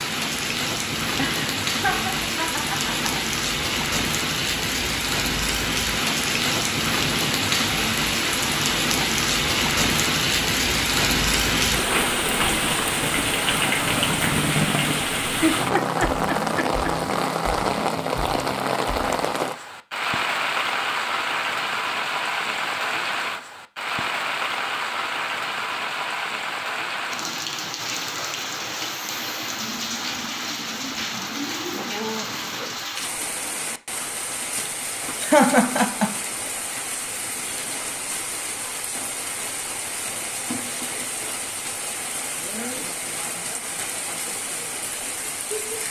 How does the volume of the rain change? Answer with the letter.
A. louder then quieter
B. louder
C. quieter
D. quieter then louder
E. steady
C.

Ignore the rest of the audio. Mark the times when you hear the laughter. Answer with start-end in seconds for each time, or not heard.
1.1-3.2, 15.4-16.9, 35.2-36.1.